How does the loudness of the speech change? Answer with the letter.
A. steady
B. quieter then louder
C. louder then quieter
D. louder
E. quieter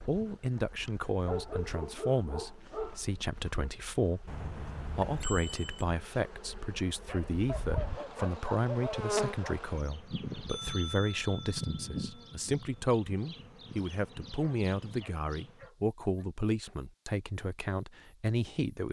A.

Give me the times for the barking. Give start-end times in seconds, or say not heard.
1.1-3.7, 7.0-9.7, 14.3-16.2.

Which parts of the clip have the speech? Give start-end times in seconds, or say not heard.
0.1-18.8.